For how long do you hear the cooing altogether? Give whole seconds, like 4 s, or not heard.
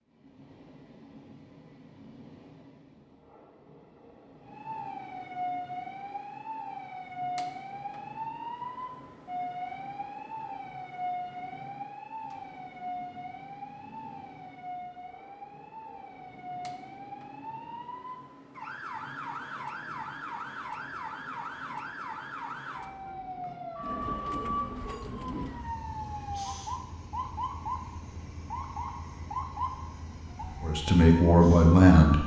2 s.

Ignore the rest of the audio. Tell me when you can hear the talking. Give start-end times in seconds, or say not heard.
30.6-32.2.